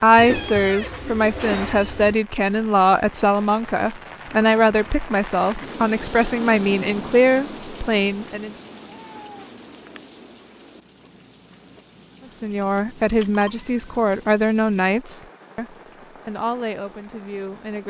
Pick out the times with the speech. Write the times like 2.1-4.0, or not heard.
0.0-8.5, 12.4-15.7, 16.2-17.8.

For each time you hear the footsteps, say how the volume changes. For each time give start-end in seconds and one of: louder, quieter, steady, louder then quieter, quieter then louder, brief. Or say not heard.
not heard.